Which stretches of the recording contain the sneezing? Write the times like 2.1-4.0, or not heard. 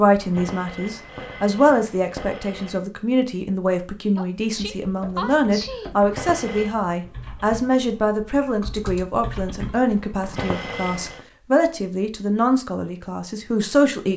4.2-6.0.